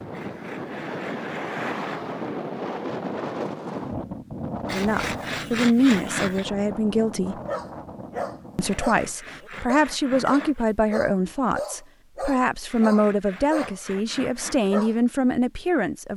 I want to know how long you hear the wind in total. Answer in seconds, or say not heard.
9 s.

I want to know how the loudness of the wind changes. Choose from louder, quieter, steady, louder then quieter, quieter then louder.
quieter.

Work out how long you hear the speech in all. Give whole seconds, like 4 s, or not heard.
10 s.